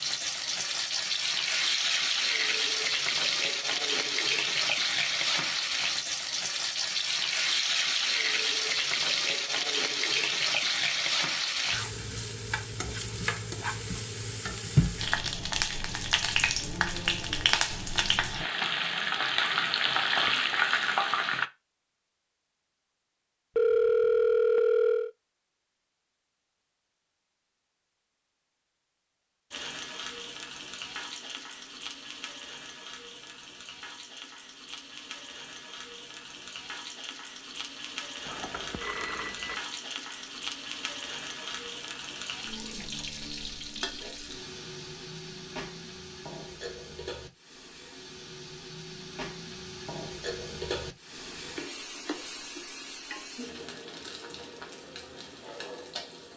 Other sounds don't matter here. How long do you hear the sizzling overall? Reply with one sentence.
You can hear the sizzling for 48 seconds altogether.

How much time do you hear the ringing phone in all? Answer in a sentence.
You can hear the ringing phone for 3 seconds altogether.